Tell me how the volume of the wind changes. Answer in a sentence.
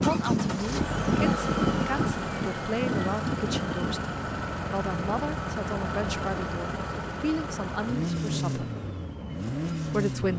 The volume of the wind goes down.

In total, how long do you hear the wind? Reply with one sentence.
The wind can be heard for 10 seconds in total.